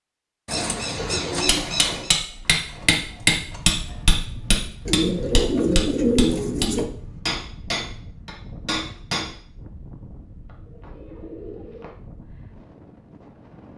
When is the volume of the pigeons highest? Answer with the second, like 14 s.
6 s.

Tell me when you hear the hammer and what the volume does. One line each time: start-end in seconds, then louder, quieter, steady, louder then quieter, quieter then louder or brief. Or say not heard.
1.4-9.3 quieter.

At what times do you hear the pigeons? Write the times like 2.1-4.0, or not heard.
0.5-2.1, 4.8-6.8, 10.4-11.9.